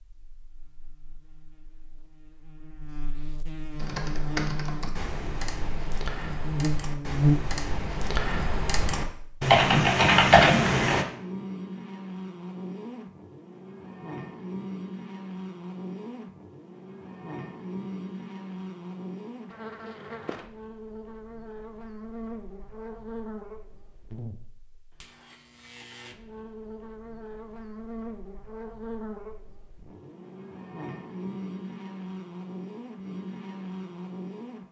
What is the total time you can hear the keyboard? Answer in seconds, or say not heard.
7 s.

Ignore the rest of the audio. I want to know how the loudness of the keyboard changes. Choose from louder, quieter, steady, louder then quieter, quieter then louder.
louder.